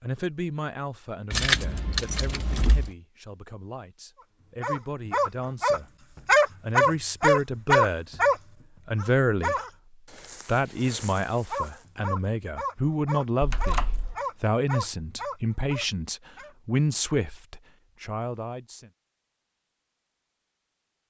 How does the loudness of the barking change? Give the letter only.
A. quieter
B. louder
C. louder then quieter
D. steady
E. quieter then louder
A.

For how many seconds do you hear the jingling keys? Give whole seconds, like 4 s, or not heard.
2 s.